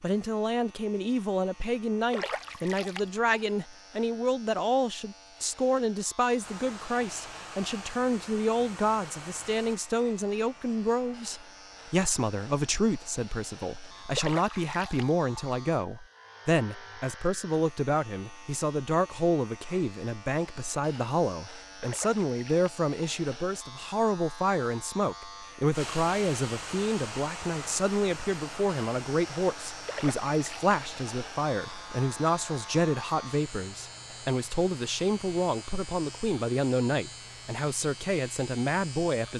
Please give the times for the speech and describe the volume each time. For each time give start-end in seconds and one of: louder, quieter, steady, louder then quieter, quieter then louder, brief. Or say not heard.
0.0-39.3 steady.